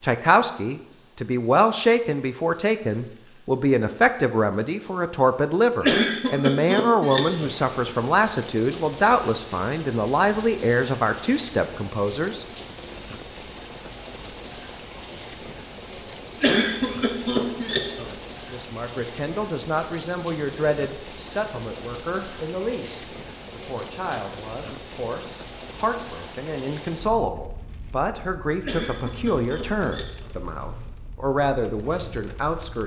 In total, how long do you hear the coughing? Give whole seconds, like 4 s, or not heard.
5 s.